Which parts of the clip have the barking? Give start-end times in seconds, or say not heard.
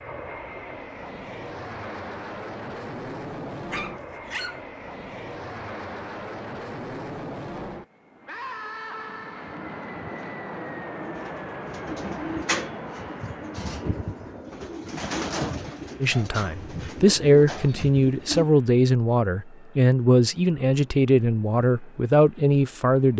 3.7-4.7.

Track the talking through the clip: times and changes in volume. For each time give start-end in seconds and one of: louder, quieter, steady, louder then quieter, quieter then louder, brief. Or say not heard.
16.0-23.1 steady.